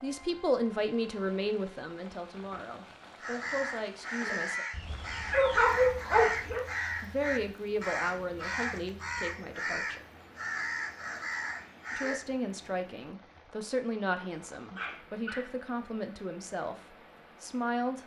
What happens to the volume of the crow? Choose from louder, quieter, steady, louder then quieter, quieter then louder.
steady.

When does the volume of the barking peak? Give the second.
6 s.